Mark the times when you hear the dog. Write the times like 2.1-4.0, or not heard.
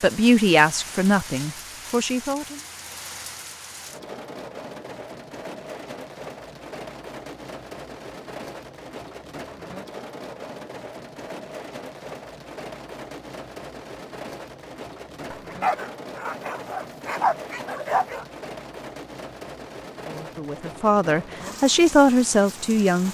15.3-18.2.